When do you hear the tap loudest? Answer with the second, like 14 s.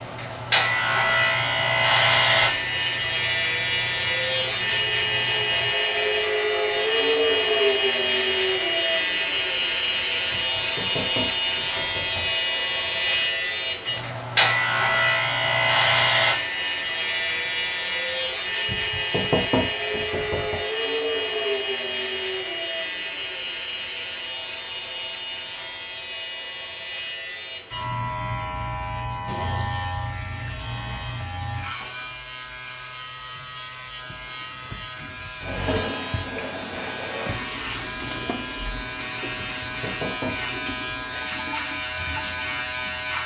36 s.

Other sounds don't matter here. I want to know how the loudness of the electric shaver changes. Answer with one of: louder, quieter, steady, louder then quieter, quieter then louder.
quieter.